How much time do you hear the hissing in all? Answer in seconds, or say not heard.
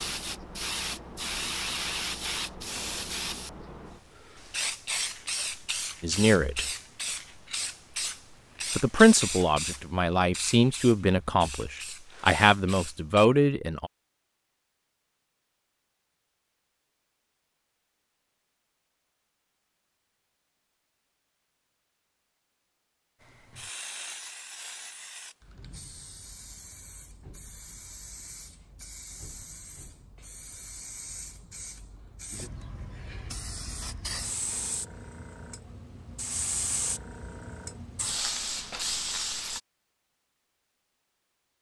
30 s.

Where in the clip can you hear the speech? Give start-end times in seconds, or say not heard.
6.0-6.7, 8.8-13.9.